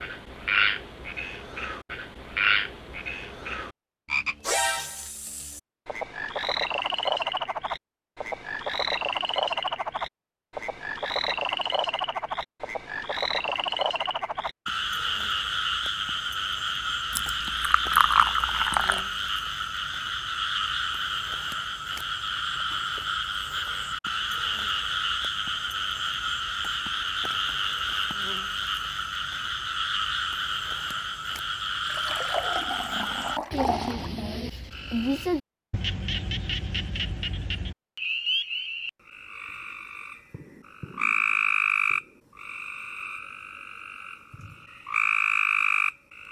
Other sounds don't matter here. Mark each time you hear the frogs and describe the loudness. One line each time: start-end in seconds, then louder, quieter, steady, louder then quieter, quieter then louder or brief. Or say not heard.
0.0-46.2 steady.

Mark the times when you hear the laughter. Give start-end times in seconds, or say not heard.
not heard.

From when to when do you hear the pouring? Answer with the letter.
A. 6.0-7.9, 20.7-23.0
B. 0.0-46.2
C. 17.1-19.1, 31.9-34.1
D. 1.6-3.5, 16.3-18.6
C.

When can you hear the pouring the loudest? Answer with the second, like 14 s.
18 s.